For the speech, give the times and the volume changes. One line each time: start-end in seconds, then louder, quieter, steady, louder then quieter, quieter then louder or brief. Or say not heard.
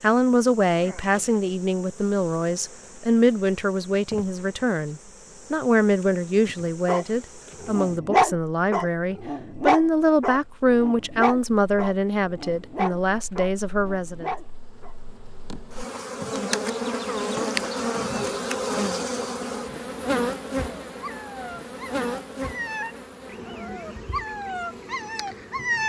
0.0-14.3 steady.